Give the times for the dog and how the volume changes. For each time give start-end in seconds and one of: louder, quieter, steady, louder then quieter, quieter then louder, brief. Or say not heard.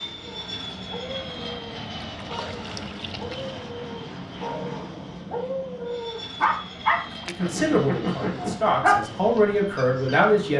0.2-10.3 louder.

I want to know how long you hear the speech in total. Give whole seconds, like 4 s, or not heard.
3 s.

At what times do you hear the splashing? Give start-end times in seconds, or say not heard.
2.1-3.5, 7.1-7.5.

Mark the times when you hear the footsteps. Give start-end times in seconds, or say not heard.
not heard.